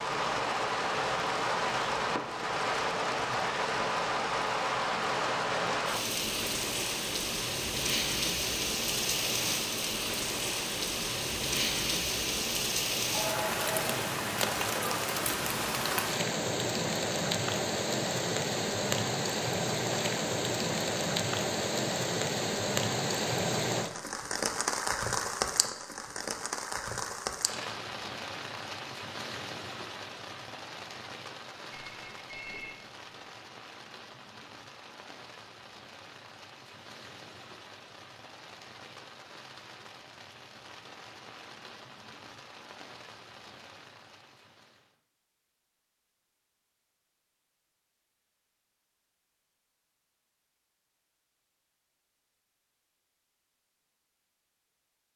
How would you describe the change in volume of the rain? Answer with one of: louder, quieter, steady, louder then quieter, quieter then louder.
quieter.